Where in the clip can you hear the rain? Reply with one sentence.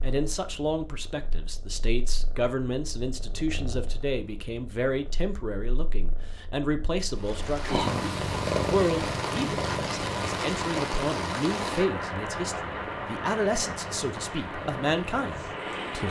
You can hear the rain from 7.0 to 16.0 s.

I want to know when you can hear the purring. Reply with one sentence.
You can hear the purring from 0.0 to 16.0 s.